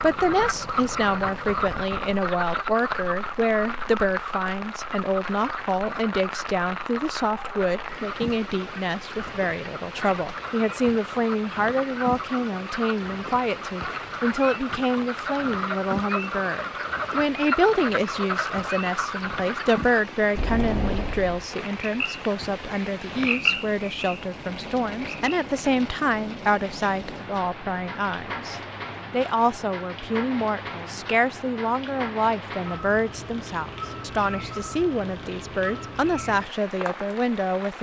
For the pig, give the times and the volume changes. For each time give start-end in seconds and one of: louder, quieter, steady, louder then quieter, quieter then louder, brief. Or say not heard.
not heard.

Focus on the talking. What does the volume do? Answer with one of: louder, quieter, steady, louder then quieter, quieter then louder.
steady.